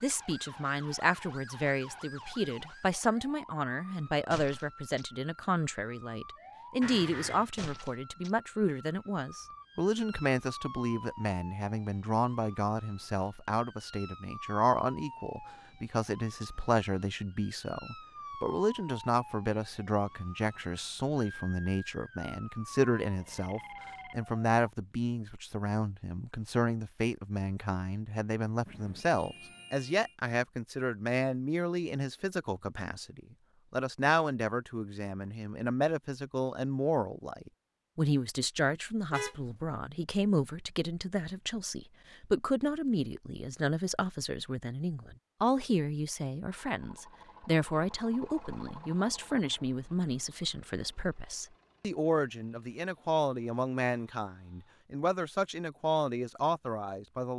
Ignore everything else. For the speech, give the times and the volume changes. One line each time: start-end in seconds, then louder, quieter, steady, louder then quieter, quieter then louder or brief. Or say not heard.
0.0-57.3 steady.